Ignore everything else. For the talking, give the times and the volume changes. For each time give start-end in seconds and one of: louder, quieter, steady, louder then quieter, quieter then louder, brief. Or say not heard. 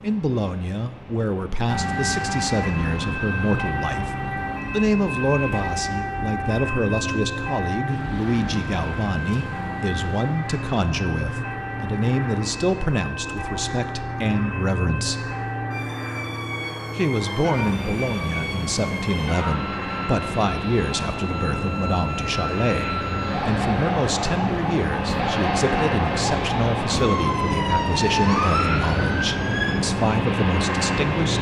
0.0-15.2 steady
16.9-31.3 steady.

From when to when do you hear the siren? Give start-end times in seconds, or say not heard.
1.6-29.8.